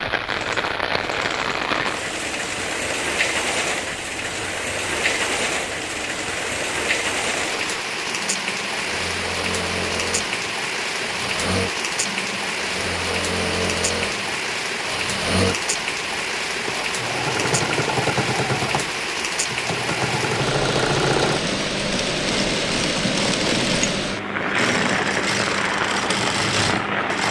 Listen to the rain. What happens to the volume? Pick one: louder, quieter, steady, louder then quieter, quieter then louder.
steady.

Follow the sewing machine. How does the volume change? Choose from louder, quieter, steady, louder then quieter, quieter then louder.
louder.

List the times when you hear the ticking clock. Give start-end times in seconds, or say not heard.
not heard.